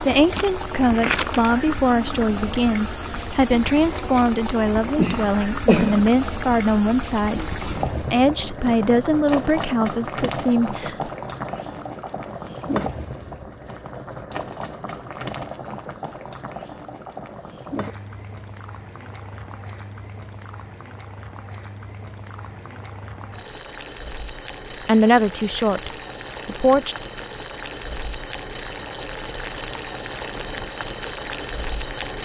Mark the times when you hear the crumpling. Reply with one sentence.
You can hear the crumpling from 0.3 to 1.6 s.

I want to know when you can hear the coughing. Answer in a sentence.
The coughing can be heard from 5.0 to 6.0 s.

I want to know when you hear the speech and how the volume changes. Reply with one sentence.
You can hear the speech from 0.1 to 11.1 s, at a steady volume; and briefly from 24.9 to 26.9 s.